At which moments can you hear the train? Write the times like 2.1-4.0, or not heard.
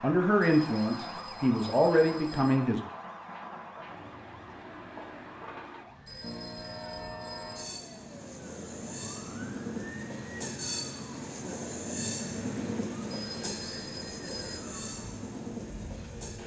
0.0-16.4.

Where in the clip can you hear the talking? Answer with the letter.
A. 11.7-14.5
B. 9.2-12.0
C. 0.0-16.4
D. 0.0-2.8
D.